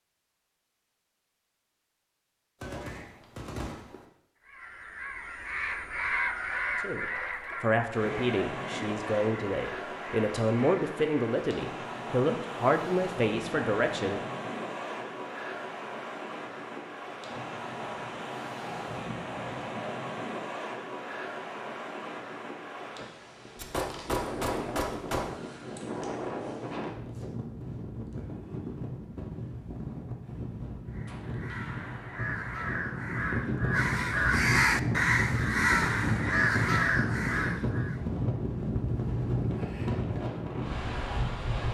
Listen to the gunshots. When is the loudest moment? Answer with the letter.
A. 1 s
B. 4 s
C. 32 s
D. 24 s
D.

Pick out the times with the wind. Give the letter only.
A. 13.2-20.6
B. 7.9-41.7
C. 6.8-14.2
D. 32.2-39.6
B.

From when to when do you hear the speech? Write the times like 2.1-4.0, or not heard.
6.8-14.2.